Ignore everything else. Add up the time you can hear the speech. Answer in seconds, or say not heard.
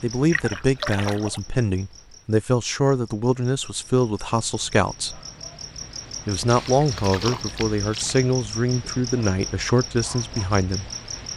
10 s.